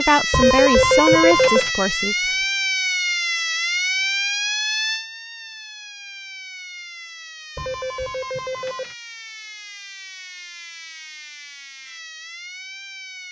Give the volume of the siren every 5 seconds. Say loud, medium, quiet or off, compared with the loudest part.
loud, quiet, quiet.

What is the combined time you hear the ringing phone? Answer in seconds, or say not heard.
3 s.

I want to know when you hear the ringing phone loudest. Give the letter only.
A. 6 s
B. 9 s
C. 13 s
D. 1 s
D.